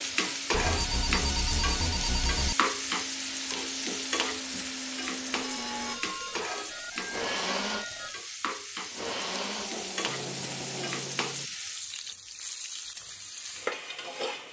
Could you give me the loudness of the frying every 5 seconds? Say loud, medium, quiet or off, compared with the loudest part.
loud, medium, medium.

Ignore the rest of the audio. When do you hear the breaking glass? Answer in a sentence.
You can't hear the breaking glass here.